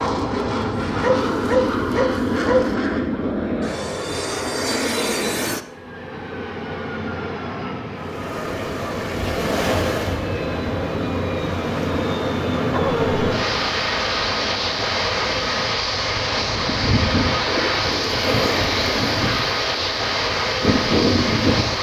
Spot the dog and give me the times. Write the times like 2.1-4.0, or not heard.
1.0-2.8, 12.7-13.2.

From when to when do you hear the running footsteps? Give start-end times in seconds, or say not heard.
not heard.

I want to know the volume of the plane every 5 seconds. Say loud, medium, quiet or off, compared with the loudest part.
loud, medium, loud, loud, loud.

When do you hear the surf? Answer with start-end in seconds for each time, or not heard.
8.0-21.7.